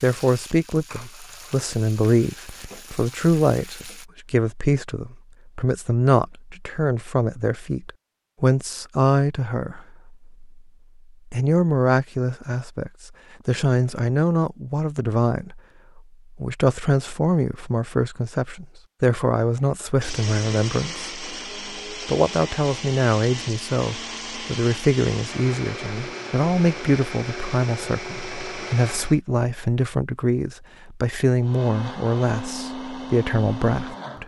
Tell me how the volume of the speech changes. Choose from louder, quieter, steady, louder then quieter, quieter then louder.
steady.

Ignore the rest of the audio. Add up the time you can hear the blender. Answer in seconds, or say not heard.
12 s.